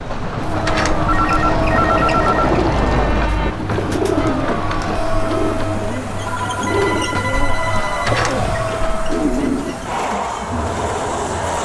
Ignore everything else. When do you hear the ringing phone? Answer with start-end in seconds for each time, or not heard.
1.1-3.5, 6.2-8.2.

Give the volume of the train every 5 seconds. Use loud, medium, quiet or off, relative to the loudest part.
loud, medium, loud.